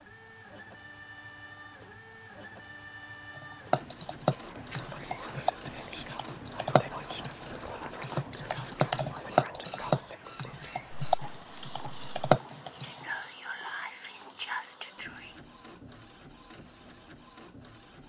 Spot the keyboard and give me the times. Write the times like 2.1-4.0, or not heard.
3.4-13.2.